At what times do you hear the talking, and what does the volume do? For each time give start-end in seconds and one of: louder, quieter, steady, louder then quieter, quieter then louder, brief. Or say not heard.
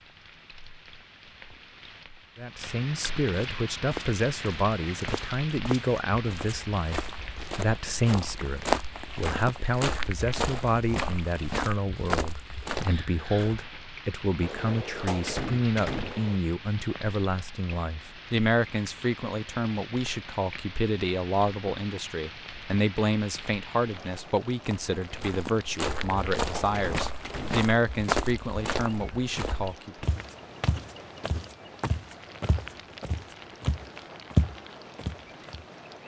2.4-30.1 steady.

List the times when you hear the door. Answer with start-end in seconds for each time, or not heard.
14.4-16.4, 25.9-27.7.